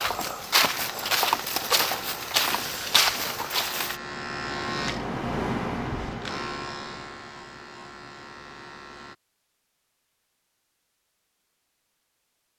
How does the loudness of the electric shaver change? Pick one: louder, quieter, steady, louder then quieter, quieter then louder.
louder then quieter.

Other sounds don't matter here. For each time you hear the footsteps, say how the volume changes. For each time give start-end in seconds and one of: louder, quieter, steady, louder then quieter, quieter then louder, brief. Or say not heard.
0.0-4.0 steady.